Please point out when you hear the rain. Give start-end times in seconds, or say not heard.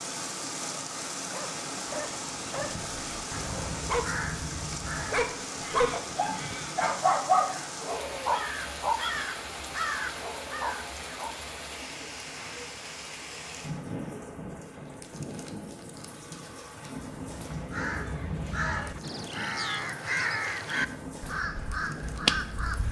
0.0-22.8.